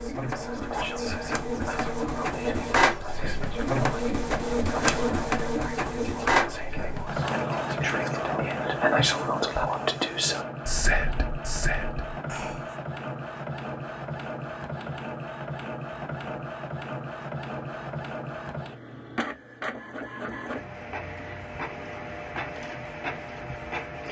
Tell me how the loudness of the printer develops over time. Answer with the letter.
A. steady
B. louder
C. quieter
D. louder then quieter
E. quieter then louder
C.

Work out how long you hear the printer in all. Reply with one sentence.
You can hear the printer for 24 seconds altogether.